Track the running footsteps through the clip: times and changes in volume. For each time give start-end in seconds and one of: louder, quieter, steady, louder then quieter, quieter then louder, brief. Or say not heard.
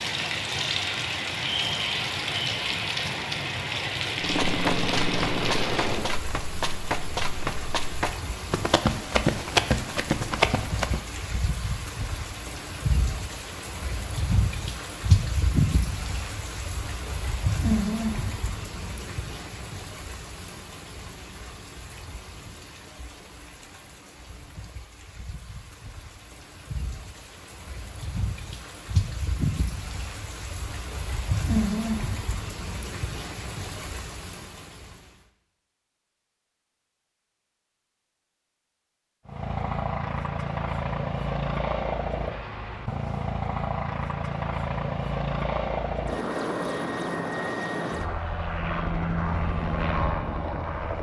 4.2-11.0 louder.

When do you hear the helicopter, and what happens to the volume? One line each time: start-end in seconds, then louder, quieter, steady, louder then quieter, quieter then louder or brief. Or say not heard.
4.1-6.2 brief
39.2-50.9 steady.